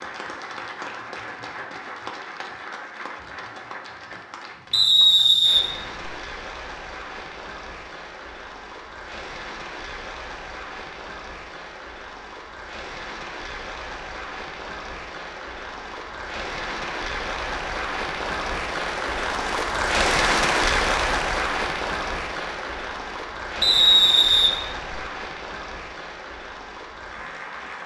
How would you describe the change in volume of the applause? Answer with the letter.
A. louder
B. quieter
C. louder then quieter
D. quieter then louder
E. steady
C.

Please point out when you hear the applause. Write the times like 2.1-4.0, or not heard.
0.0-27.8.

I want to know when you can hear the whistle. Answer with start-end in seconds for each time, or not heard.
4.7-6.1, 23.6-25.0.